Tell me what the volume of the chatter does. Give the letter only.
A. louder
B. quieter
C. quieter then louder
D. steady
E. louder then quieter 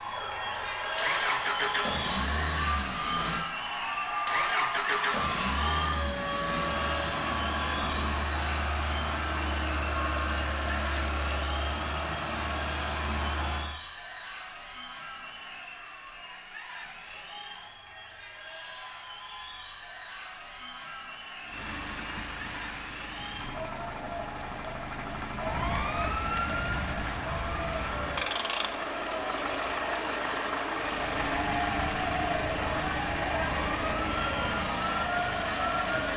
C.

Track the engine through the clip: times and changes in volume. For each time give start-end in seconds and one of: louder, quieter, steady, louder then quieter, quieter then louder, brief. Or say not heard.
0.1-13.8 steady
21.4-36.1 louder.